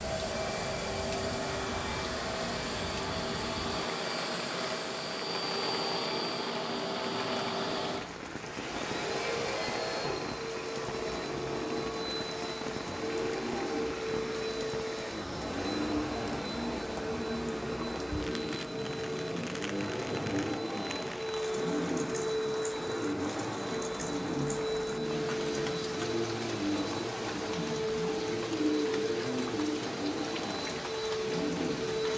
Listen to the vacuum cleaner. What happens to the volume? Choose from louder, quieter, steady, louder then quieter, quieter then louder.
steady.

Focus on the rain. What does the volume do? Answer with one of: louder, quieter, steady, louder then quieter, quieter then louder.
steady.